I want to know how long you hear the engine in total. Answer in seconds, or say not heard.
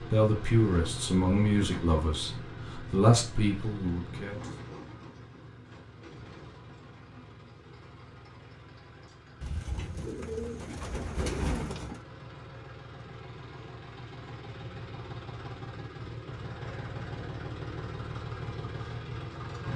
20 s.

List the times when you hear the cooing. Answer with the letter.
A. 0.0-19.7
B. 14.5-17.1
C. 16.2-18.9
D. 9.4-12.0
D.